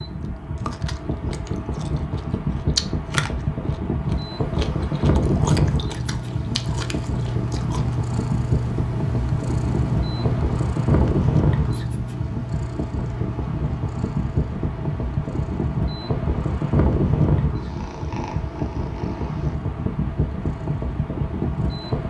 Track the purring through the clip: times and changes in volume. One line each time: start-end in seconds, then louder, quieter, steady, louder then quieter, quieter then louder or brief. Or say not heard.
6.0-22.0 quieter.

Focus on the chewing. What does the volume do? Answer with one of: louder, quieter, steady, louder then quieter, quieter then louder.
louder then quieter.